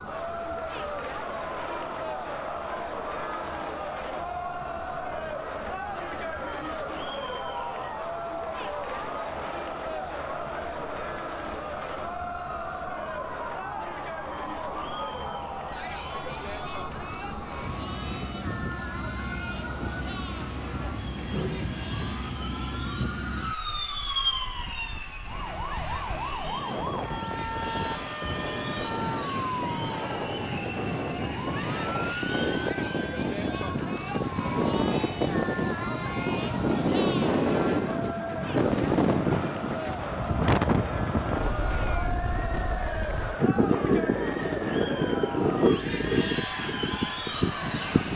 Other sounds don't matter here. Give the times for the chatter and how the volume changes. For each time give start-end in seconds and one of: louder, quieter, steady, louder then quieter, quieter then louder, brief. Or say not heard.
0.0-48.1 quieter then louder.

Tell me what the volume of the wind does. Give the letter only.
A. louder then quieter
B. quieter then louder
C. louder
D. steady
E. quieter
C.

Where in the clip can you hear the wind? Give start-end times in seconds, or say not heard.
16.9-48.1.